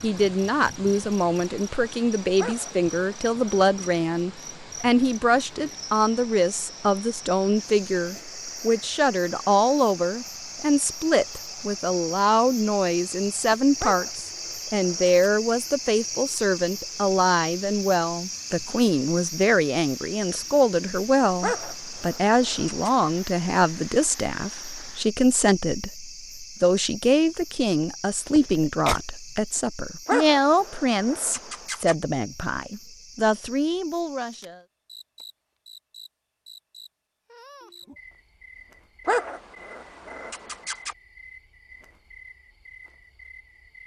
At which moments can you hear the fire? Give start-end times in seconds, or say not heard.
not heard.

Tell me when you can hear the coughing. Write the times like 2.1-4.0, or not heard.
27.4-29.0.